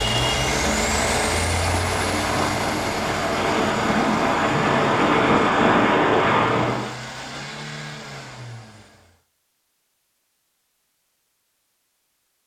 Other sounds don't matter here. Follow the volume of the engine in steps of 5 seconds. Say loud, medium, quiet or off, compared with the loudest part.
loud, medium, off.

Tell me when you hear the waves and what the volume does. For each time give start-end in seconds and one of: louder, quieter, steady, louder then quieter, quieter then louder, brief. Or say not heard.
0.0-7.0 louder.